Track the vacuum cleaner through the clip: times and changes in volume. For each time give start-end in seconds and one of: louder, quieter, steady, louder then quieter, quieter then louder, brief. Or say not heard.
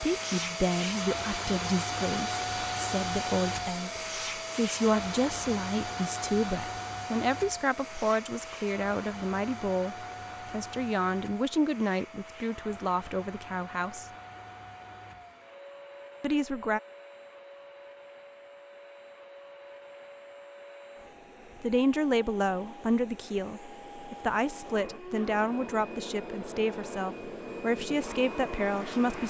0.0-29.2 quieter then louder.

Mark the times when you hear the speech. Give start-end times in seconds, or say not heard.
0.0-14.1, 16.2-16.8, 21.6-29.2.